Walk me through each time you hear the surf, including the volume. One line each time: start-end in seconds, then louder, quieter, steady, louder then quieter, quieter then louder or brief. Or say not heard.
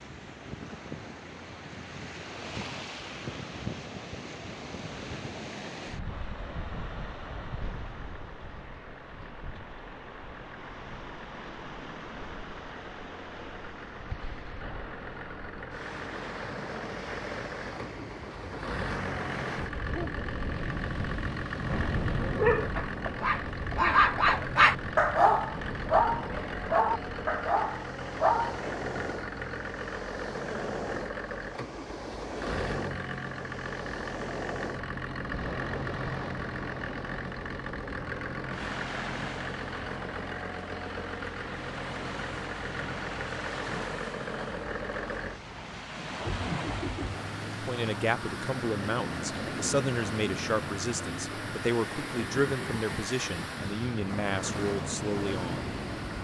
0.0-56.1 steady.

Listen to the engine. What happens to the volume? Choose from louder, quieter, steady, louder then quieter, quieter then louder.
louder.